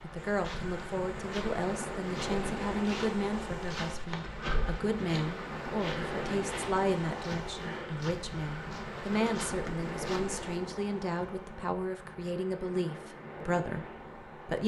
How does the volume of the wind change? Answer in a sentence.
The volume of the wind goes down.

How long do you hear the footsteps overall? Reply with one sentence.
The footsteps can be heard for 10 seconds in total.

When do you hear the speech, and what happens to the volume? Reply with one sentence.
You can hear the speech from 0.0 to 14.6 s, at a steady volume.